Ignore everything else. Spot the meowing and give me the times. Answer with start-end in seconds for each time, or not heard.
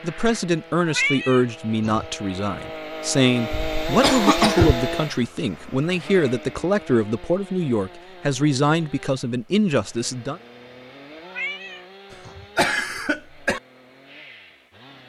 0.8-2.0, 11.2-12.4.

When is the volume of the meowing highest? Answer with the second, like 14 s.
1 s.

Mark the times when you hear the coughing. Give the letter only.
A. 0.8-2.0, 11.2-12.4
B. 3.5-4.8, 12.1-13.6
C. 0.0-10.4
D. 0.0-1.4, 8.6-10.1
B.